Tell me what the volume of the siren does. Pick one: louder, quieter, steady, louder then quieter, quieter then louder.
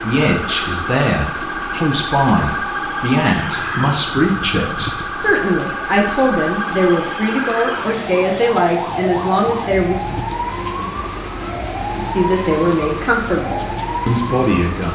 steady.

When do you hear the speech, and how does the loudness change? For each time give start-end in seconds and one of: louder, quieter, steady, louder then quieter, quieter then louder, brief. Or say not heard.
0.0-9.9 steady
11.9-14.9 brief.